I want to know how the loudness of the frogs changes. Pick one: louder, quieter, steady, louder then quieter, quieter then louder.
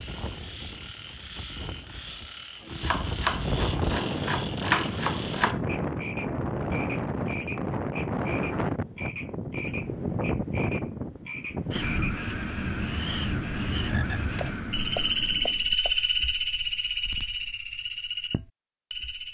louder.